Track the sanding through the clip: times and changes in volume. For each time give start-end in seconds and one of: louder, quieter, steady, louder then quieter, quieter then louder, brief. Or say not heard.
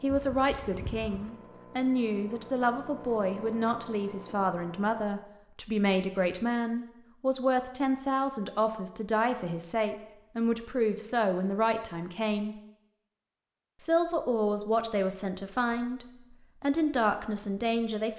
not heard.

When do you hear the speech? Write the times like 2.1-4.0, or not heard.
0.0-12.6, 13.8-18.1.